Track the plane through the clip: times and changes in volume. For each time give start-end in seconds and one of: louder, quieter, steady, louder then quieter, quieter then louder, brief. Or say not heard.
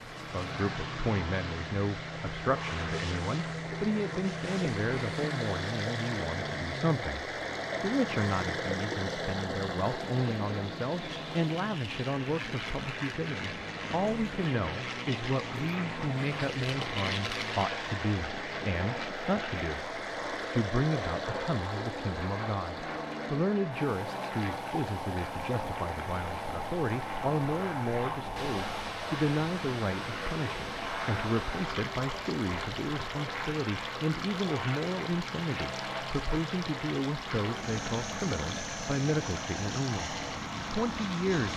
0.0-41.5 steady.